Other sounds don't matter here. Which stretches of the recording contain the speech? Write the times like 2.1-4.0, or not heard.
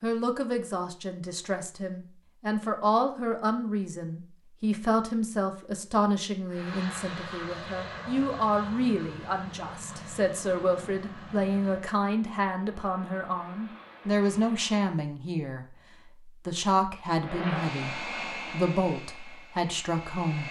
0.0-15.7, 16.2-20.4.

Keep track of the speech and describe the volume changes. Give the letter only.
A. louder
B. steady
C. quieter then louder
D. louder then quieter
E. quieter
B.